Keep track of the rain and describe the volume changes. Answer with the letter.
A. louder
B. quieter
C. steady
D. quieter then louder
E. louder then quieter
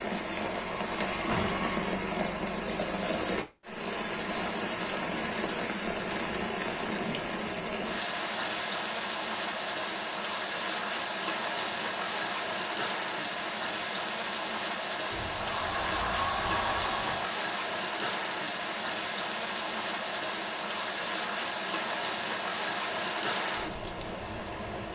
C.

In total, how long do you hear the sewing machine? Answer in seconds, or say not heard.
not heard.